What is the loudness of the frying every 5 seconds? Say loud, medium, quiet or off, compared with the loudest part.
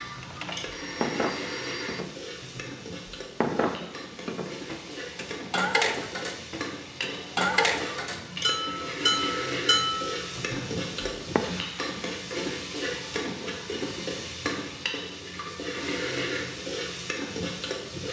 medium, loud, loud, loud.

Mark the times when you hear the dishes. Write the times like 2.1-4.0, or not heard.
0.0-11.4.